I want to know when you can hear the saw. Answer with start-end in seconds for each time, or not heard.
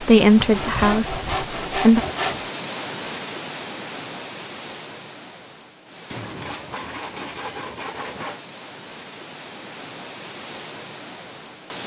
0.4-2.5, 6.1-8.4.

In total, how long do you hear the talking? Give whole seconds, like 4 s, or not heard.
2 s.